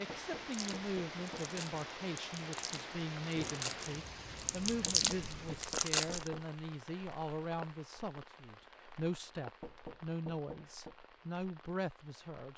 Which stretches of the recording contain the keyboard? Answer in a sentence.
You can't hear the keyboard here.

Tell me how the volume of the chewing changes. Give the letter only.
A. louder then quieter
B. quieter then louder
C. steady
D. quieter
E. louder
E.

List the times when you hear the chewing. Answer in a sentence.
You can hear the chewing from 0.5 to 6.3 s.